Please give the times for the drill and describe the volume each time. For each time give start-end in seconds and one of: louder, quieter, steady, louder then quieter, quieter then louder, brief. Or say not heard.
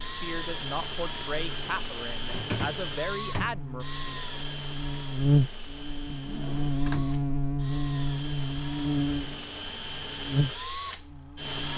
0.0-11.7 quieter then louder.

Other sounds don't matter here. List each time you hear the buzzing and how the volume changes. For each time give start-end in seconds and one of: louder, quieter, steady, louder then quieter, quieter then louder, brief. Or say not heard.
0.0-11.7 louder then quieter.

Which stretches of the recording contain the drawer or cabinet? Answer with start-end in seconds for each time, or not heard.
2.2-3.6, 6.0-7.1.